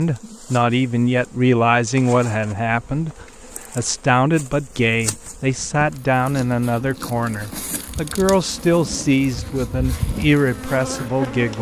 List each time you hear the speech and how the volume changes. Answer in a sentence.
You can hear the speech from 0.0 to 11.5 s, at a steady volume.